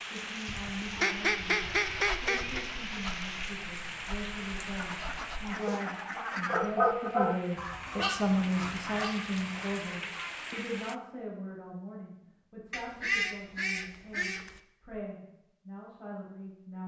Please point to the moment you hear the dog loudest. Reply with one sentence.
The volume of the dog peaks at 7 seconds.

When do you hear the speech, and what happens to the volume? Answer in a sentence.
You can hear the speech from 0.0 to 16.8 s, getting louder then quieter.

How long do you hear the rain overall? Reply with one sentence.
The rain can be heard for 11 seconds in total.